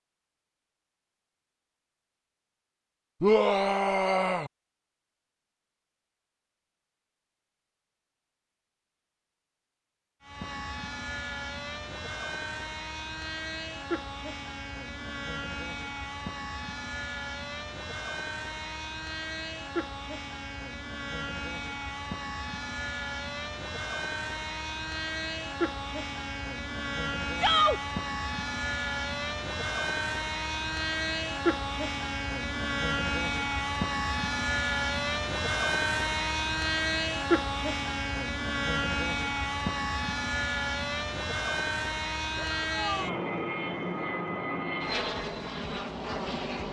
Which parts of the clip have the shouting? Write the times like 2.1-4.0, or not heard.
3.2-4.5, 27.4-27.8, 42.4-43.2.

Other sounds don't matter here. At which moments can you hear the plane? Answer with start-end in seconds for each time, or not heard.
10.2-46.6.